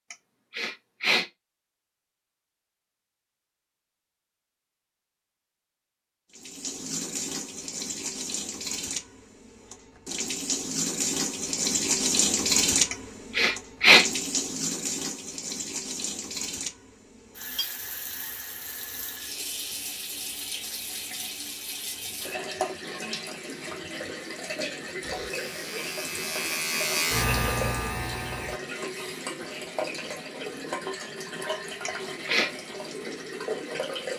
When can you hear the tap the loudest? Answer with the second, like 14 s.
12 s.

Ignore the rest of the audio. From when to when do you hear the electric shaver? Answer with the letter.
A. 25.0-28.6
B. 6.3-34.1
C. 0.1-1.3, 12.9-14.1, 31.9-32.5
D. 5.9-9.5
A.